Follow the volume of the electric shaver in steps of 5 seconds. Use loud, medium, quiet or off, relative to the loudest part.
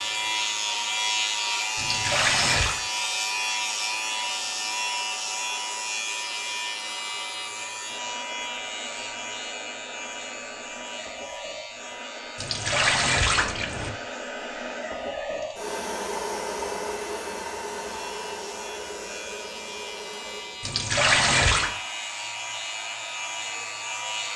loud, medium, quiet, quiet, medium.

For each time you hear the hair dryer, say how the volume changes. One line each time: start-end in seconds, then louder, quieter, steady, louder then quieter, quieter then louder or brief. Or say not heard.
0.0-24.3 louder then quieter.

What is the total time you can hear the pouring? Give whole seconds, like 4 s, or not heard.
4 s.